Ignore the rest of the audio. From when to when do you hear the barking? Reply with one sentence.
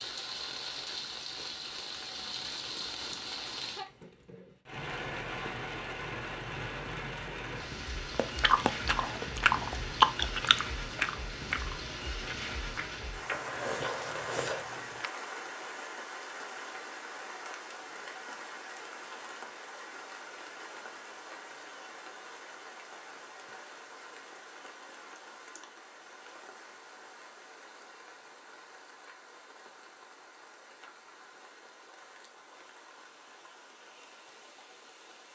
The barking can't be heard in this clip.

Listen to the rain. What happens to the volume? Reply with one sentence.
The loudness of the rain goes down.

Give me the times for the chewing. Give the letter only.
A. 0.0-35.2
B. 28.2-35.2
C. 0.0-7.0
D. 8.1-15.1
D.